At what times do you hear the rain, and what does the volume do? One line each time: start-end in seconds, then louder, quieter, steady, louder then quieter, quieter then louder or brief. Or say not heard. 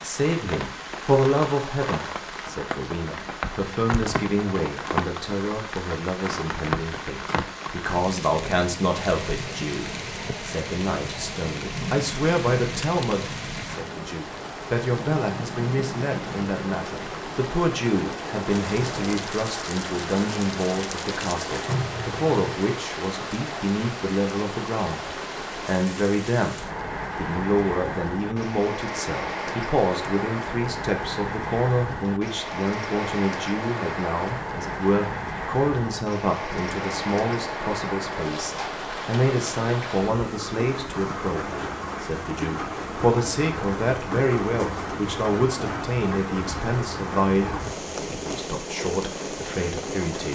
0.0-50.3 steady.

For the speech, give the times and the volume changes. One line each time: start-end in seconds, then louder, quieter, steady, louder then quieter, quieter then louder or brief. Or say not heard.
0.0-50.3 steady.